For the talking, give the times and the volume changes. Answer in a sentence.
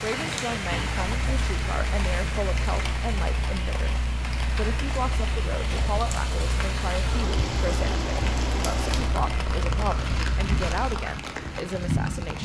The talking can be heard from 0.0 to 12.4 s, at a steady volume.